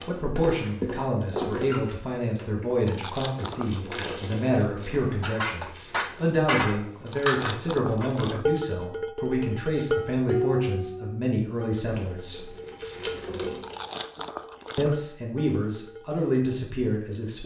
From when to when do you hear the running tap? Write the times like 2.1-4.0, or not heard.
0.0-7.8, 11.9-13.9.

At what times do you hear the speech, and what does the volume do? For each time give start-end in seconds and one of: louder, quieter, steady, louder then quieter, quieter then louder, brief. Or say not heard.
0.0-12.5 steady
14.8-17.4 brief.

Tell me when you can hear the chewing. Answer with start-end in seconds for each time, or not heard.
2.7-4.2, 7.0-8.4, 13.4-14.9.